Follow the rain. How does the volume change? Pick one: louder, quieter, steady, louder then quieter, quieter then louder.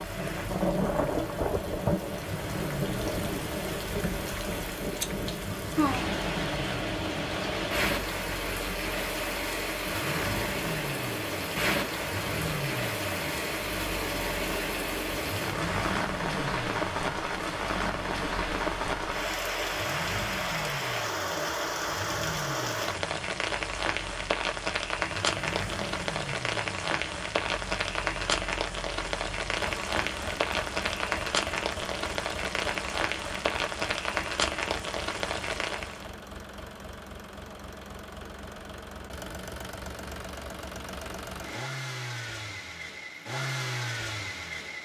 steady.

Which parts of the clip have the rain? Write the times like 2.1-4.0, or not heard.
0.0-36.1.